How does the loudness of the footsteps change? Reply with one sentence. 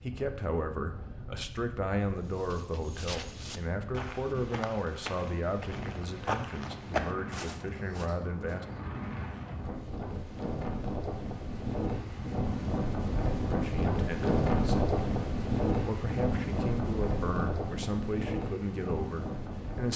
The volume of the footsteps goes up, then down.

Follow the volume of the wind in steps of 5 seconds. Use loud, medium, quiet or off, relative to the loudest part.
quiet, medium, loud, loud.